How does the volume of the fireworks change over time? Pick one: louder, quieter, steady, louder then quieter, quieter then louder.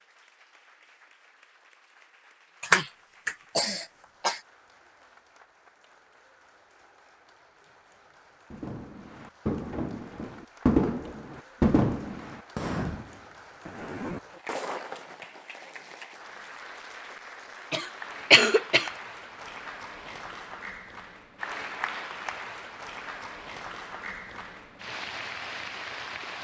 louder then quieter.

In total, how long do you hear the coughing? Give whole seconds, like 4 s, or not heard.
3 s.